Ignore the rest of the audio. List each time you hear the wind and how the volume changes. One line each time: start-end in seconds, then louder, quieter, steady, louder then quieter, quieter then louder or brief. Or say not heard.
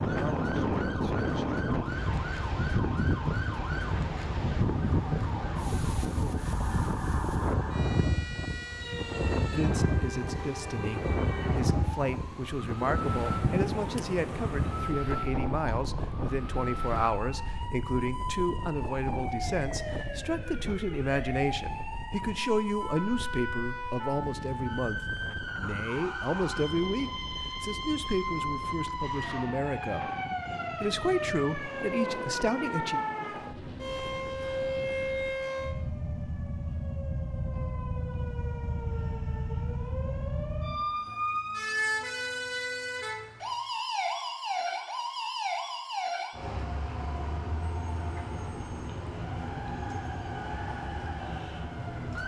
0.0-35.5 quieter.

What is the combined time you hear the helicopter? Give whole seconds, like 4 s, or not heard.
not heard.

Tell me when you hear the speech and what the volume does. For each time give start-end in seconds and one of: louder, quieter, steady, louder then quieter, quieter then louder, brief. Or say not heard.
9.4-30.1 steady
30.8-33.0 brief.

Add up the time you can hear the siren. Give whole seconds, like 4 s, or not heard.
52 s.